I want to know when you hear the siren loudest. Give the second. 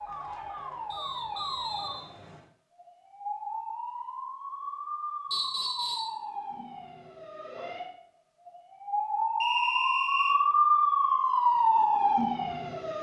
11 s.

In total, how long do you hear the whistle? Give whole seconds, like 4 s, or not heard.
3 s.